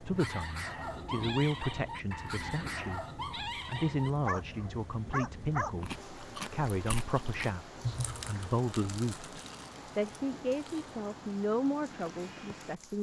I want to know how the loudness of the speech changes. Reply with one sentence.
The volume of the speech stays about the same.